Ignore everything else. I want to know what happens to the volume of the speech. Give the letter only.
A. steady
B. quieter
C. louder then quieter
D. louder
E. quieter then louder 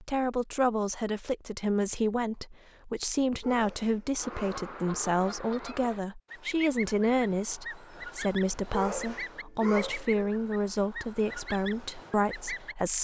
A.